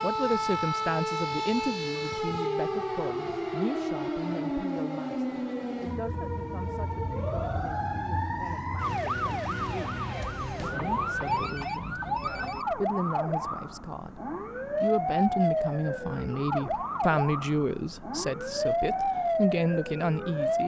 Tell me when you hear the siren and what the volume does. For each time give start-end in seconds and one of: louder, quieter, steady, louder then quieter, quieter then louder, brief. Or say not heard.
0.0-20.6 steady.